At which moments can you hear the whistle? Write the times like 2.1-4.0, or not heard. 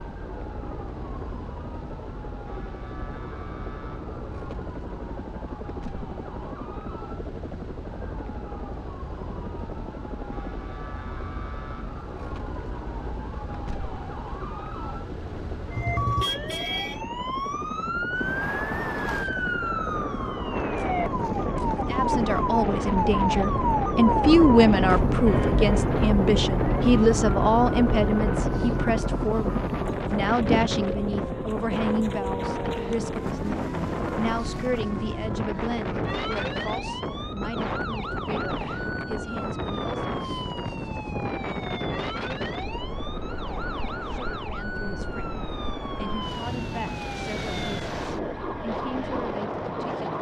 not heard.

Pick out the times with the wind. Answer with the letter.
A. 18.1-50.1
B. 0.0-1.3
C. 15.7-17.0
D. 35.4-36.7
A.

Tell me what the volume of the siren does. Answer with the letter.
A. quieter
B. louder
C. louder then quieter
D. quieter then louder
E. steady
C.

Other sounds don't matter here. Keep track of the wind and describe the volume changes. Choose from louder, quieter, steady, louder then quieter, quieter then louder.
steady.